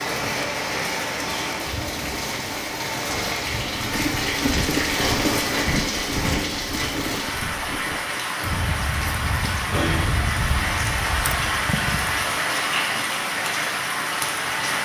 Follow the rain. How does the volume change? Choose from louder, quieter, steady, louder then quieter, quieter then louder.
steady.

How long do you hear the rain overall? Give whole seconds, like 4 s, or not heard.
15 s.